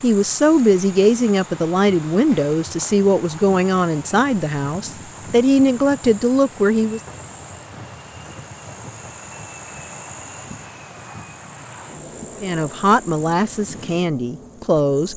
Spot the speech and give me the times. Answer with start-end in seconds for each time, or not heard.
0.0-7.0, 12.4-15.1.